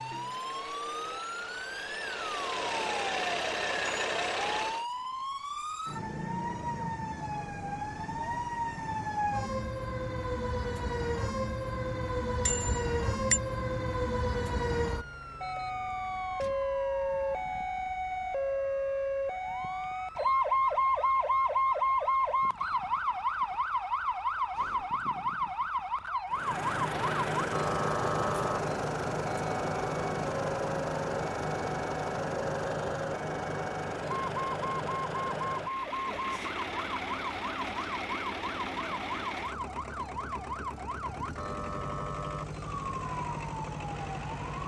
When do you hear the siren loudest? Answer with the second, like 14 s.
21 s.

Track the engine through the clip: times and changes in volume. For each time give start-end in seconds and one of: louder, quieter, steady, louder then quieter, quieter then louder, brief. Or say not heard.
0.0-4.8 louder
26.3-44.6 quieter.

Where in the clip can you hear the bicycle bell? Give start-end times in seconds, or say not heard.
12.4-13.4.